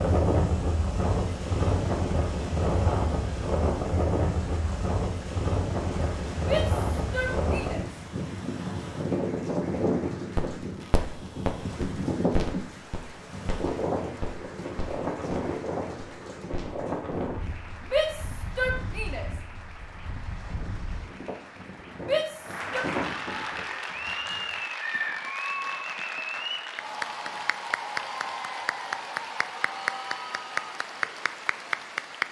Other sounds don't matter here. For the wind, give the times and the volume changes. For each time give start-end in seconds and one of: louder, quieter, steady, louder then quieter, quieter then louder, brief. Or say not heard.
0.0-24.6 quieter.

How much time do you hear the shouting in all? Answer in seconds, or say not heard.
4 s.